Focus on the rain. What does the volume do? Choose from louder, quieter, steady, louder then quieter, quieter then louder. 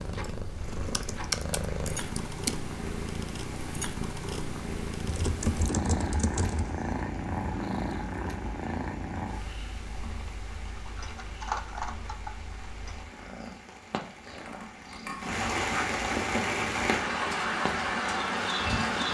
louder.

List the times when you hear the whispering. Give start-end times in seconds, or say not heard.
not heard.